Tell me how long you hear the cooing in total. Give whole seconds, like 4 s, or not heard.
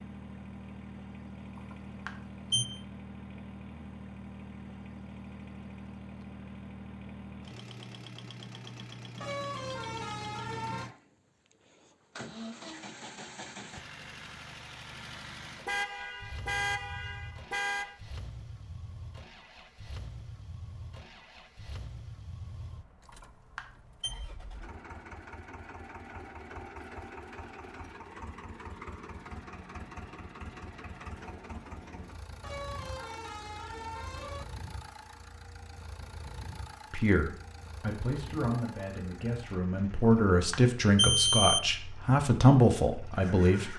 not heard.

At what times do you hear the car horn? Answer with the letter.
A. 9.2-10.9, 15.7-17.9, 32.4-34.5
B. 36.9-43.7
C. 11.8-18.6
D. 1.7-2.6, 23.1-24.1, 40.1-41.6
A.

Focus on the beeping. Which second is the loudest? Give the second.
41 s.